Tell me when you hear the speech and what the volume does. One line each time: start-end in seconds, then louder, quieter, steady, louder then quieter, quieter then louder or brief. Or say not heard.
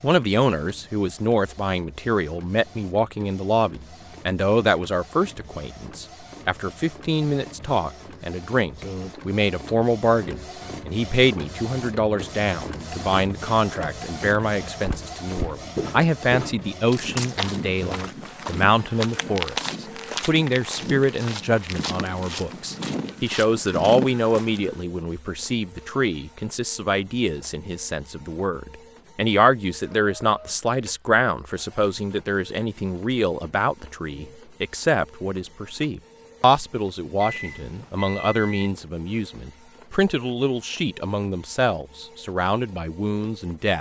0.0-43.7 steady.